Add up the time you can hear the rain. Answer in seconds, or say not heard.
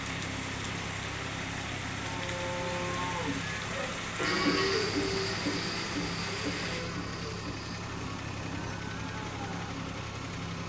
7 s.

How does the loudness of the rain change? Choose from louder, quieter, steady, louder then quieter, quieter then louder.
steady.